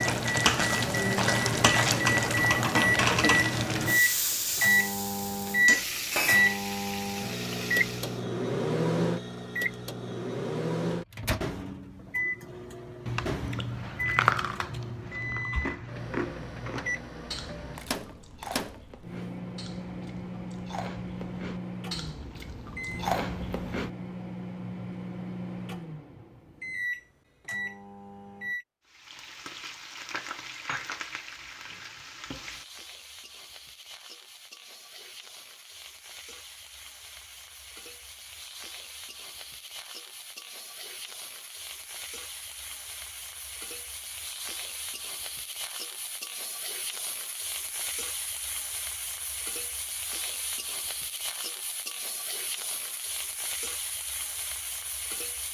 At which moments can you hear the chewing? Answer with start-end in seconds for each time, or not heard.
13.1-23.9.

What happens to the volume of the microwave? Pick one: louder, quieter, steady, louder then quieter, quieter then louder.
quieter.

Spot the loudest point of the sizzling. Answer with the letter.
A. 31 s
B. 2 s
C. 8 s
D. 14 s
B.